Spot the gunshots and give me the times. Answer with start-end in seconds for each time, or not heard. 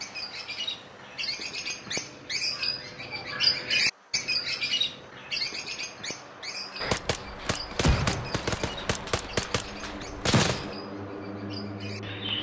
6.8-10.8.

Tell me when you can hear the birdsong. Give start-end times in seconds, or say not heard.
0.0-12.3.